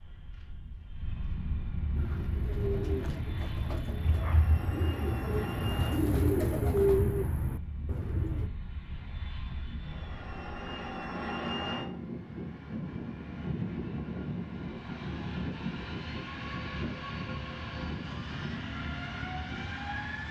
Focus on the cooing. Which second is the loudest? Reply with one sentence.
The volume of the cooing peaks at 7 seconds.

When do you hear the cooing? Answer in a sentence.
The cooing can be heard from 1.9 to 8.5 s.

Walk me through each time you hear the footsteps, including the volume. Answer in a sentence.
The footsteps can't be heard in this clip.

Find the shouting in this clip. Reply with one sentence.
You can't hear the shouting here.